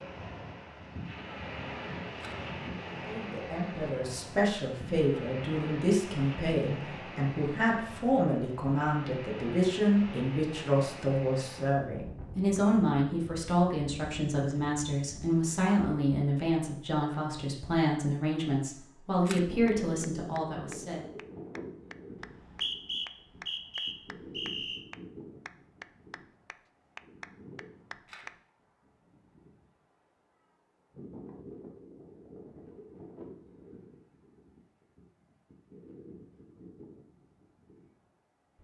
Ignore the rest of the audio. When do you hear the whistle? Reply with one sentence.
You can hear the whistle from 22.2 to 24.9 s.